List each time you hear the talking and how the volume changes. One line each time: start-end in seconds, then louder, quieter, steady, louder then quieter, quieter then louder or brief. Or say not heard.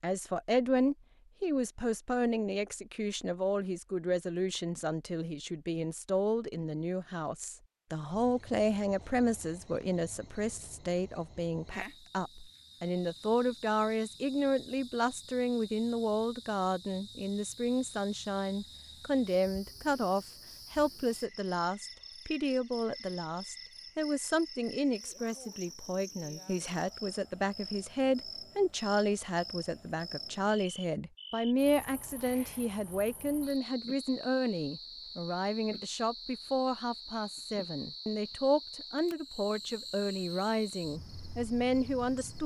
0.0-42.4 steady.